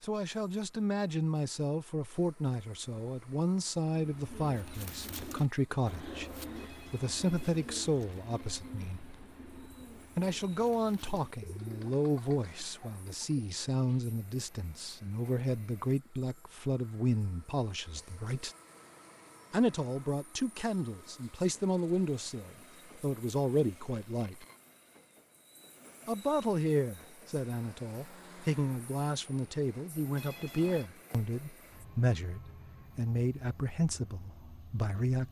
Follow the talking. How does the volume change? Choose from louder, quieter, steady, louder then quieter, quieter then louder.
steady.